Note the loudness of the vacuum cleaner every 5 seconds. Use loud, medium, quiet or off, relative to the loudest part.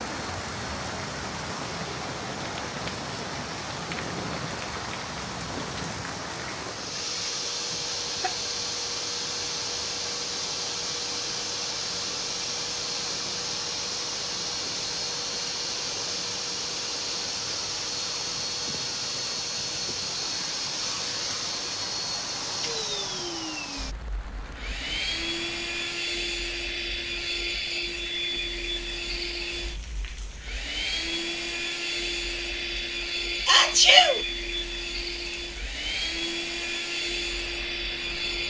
quiet, loud, loud, loud, loud, loud, loud, loud.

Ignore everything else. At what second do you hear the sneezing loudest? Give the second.
34 s.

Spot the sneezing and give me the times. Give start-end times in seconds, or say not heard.
7.5-8.4, 33.5-34.2.